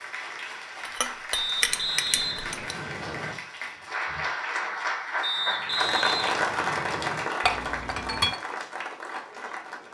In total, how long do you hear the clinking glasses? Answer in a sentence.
You can hear the clinking glasses for 3 seconds altogether.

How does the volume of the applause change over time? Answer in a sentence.
The loudness of the applause goes up, then down.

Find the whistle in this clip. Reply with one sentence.
You can hear the whistle from 1.3 to 3.4 s and from 5.2 to 7.2 s.